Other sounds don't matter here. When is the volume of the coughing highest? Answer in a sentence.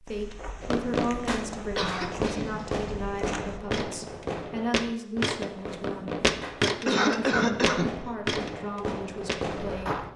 The loudest moment of the coughing is at 7 seconds.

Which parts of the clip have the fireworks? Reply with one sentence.
You can hear the fireworks from 0.6 to 9.9 s.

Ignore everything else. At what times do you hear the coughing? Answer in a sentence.
You can hear the coughing from 1.8 to 3.1 s and from 6.6 to 7.9 s.